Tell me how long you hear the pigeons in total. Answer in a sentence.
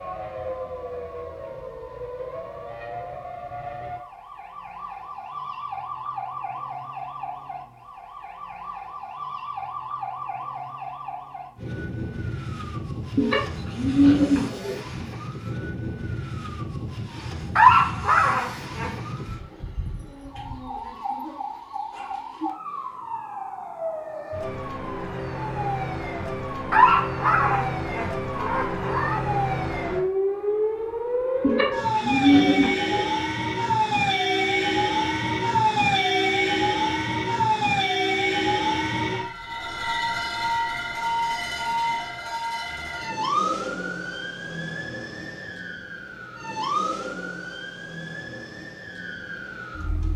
You can hear the pigeons for 3 seconds altogether.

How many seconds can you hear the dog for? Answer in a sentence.
You can hear the dog for 4 seconds altogether.